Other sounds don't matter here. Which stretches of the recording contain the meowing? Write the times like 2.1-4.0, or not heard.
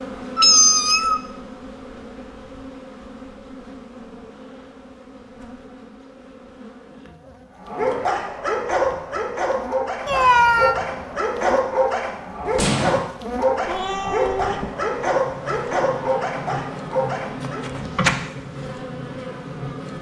0.3-1.2, 10.1-10.8, 13.7-14.7.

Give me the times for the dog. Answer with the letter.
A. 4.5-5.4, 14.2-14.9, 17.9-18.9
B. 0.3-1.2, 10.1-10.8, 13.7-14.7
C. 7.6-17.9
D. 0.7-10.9
C.